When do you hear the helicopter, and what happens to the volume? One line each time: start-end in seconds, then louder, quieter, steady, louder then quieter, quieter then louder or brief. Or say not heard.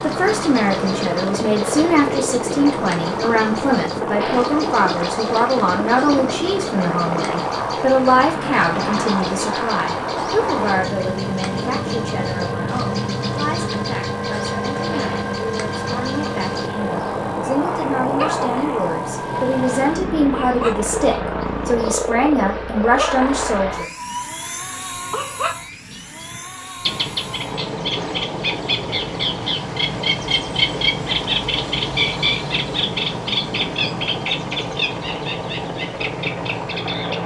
0.0-37.2 quieter.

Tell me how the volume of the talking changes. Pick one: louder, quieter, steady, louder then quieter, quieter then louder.
quieter then louder.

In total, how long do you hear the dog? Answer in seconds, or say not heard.
not heard.